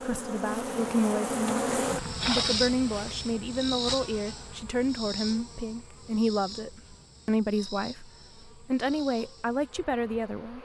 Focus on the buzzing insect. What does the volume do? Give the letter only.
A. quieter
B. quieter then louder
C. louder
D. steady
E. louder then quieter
A.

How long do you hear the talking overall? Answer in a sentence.
The talking can be heard for 10 seconds in total.